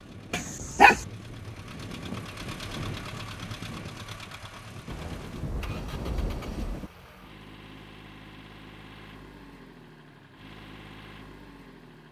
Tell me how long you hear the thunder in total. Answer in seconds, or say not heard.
2 s.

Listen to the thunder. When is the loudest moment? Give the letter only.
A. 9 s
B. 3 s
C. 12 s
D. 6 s
D.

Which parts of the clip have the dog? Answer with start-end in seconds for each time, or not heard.
0.3-1.1.